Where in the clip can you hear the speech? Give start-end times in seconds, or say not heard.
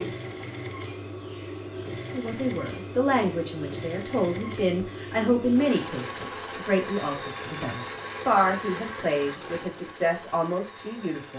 2.1-11.3.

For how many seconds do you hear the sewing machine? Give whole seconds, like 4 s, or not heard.
11 s.